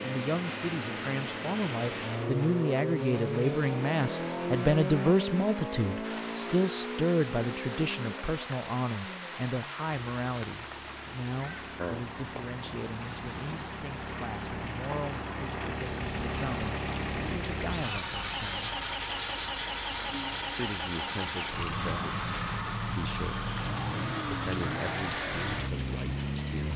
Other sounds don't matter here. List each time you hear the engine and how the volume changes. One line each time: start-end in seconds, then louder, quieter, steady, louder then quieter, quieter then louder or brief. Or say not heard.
0.0-26.7 quieter then louder.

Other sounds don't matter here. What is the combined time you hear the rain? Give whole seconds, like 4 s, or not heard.
21 s.